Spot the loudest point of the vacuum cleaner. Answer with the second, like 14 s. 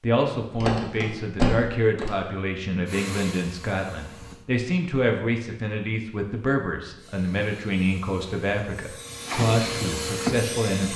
10 s.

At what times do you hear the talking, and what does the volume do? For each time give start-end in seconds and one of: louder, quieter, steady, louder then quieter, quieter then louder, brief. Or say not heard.
0.0-10.9 steady.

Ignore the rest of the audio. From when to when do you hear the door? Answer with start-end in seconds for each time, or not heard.
0.6-2.1.